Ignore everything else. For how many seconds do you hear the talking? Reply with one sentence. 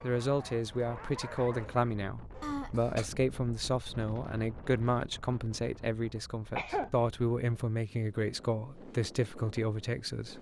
The talking can be heard for 10 seconds in total.